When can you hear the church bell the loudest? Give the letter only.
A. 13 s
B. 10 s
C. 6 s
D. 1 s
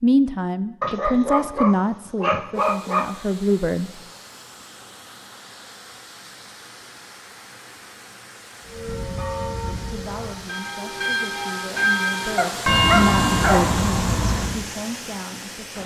A.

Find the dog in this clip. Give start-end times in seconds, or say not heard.
0.8-3.1, 12.3-13.8.